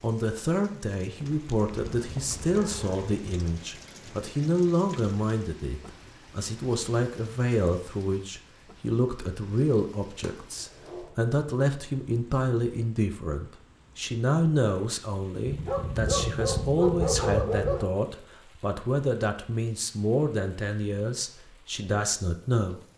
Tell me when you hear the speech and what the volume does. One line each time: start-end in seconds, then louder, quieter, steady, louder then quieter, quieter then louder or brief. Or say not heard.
0.0-22.8 steady.